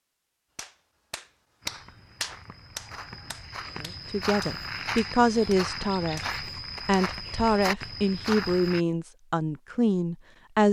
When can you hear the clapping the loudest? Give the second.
2 s.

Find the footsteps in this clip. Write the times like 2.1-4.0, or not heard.
1.6-8.8.